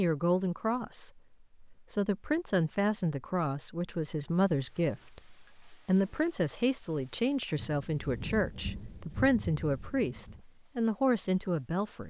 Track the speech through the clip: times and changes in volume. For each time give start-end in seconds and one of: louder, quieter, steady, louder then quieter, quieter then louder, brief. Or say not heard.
0.0-12.0 steady.